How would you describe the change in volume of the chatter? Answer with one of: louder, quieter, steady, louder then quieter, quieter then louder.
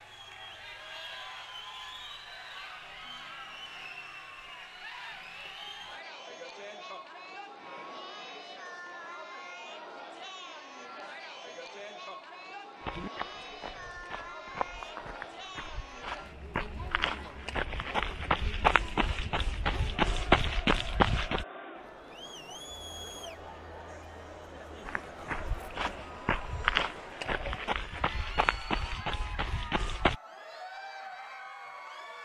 steady.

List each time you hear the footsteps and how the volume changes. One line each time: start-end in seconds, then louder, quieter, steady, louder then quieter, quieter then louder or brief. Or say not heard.
12.8-21.4 louder
24.9-30.1 louder then quieter.